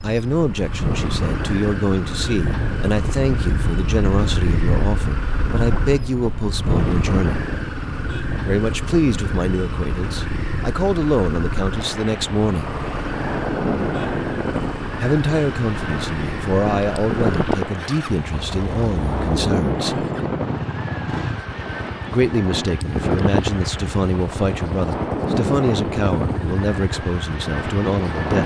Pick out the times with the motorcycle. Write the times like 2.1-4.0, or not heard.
0.0-28.3.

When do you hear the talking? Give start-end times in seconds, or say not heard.
0.0-7.4, 8.4-12.7, 15.0-20.1, 22.1-28.4.